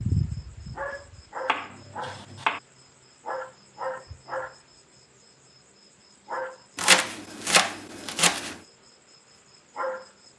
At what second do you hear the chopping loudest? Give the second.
7 s.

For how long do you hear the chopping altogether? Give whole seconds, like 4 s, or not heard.
3 s.